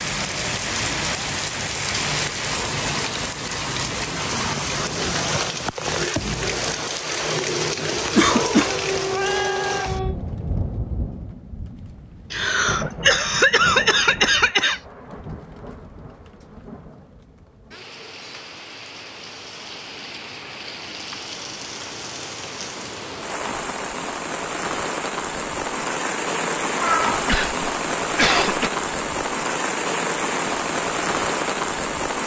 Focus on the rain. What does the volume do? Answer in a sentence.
The loudness of the rain goes down, then up.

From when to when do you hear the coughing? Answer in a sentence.
The coughing can be heard from 8.2 to 8.8 s, from 12.3 to 14.8 s and from 27.2 to 28.7 s.